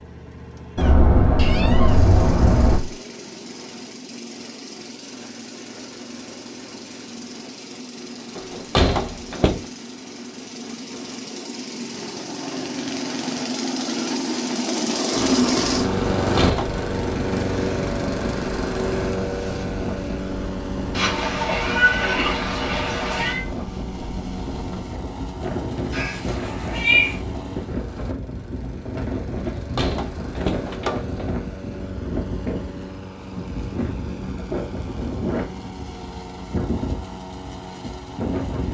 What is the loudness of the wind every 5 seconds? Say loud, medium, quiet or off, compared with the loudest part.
off, off, off, loud, loud, loud, loud, loud.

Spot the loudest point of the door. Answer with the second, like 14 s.
9 s.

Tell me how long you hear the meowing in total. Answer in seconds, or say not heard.
6 s.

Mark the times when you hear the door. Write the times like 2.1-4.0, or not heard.
8.3-9.7, 16.1-16.8, 29.6-31.3.